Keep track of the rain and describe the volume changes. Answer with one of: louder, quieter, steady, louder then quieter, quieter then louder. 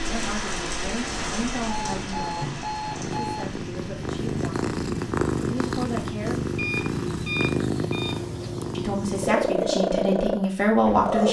quieter.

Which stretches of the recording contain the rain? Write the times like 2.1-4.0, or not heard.
0.0-7.2.